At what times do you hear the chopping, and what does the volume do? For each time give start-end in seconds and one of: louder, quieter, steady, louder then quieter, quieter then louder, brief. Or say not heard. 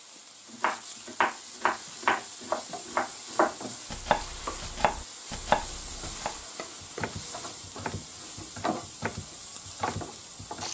0.5-10.6 quieter.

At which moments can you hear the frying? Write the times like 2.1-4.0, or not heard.
0.0-10.6.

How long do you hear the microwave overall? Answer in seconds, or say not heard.
not heard.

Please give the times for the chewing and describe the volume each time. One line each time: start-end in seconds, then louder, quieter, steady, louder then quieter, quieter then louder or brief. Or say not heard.
not heard.